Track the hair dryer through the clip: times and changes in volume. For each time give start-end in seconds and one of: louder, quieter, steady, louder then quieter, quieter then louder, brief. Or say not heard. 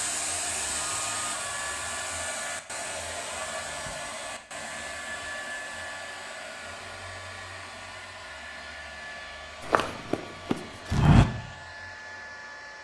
0.0-12.7 quieter.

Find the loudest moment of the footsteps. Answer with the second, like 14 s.
11 s.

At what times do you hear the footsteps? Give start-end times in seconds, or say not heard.
9.6-11.2.